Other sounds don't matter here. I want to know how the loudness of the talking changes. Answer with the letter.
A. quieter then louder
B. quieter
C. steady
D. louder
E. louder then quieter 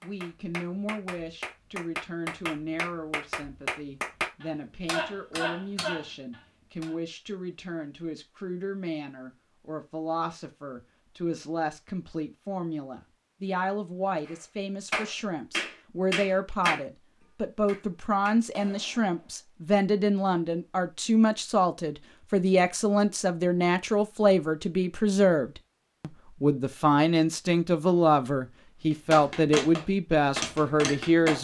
D.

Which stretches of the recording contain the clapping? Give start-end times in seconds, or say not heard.
0.0-7.0, 14.2-19.4, 28.9-31.4.